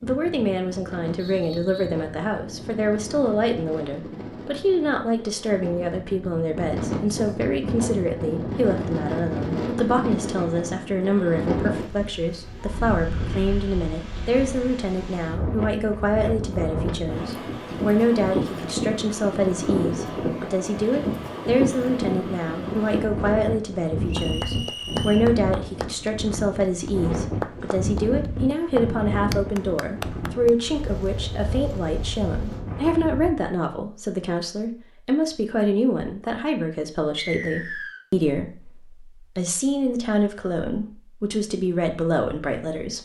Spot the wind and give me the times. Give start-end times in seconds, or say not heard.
0.0-33.4.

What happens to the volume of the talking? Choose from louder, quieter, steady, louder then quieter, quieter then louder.
steady.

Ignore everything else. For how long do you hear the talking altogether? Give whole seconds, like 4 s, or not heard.
43 s.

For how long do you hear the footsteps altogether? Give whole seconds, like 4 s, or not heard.
not heard.